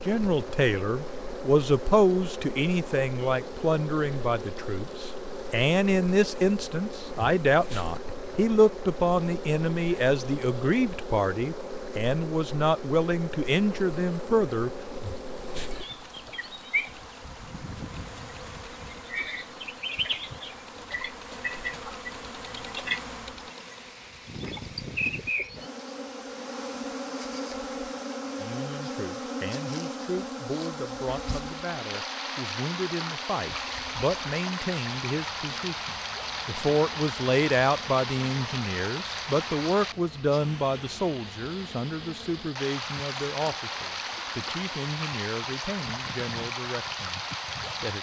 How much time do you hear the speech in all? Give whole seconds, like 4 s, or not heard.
34 s.